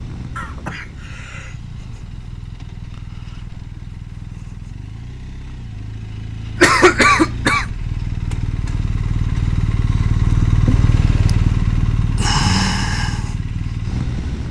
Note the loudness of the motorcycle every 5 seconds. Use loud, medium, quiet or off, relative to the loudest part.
quiet, medium, loud.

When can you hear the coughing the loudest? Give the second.
7 s.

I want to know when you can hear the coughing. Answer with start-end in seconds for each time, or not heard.
0.3-1.6, 6.6-7.7, 10.7-11.3.